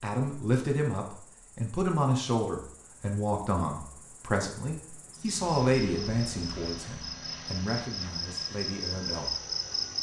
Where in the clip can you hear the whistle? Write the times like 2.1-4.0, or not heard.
not heard.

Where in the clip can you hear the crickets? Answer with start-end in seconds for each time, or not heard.
0.1-9.9.